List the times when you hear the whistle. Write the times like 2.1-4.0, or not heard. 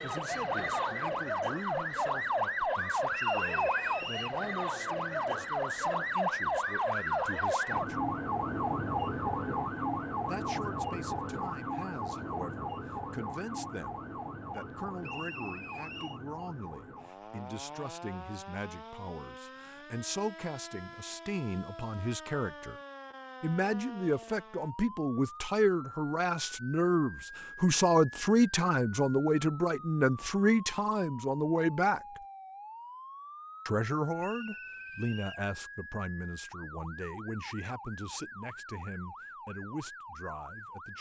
3.1-4.4, 15.0-16.2, 34.2-35.5.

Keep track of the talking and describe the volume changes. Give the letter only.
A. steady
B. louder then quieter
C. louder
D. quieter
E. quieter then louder
B.